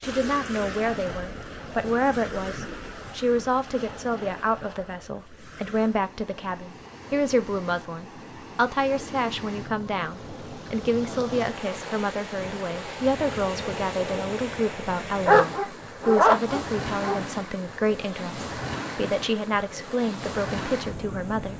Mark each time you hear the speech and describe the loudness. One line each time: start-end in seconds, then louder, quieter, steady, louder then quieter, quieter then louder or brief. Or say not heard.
0.0-21.5 steady.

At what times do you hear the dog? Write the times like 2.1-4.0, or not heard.
15.2-17.2.